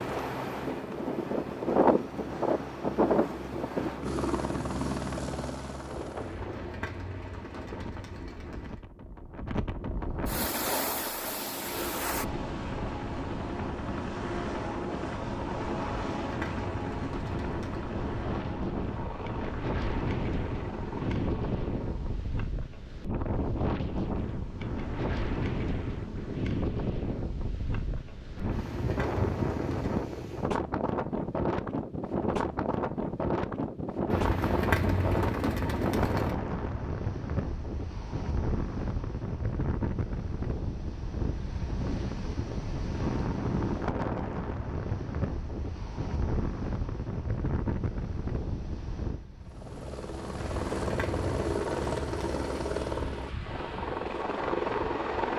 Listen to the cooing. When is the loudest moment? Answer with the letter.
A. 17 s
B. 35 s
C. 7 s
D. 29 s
B.